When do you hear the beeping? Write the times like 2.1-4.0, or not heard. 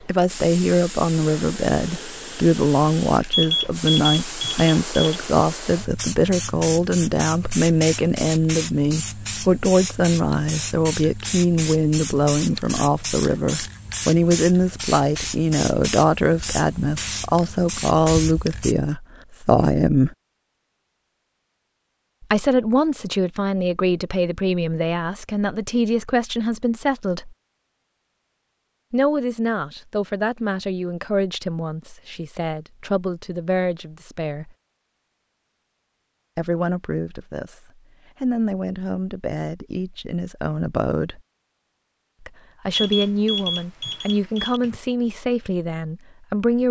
3.3-5.2, 42.7-44.7.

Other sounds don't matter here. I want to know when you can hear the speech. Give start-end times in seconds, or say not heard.
0.1-20.1, 22.2-27.4, 28.9-34.5, 36.4-41.2, 42.2-46.6.